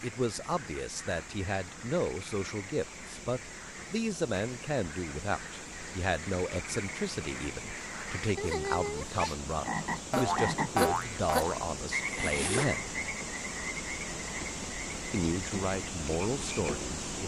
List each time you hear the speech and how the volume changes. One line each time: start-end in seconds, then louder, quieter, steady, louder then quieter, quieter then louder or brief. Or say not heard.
0.0-12.9 steady
15.1-17.2 brief.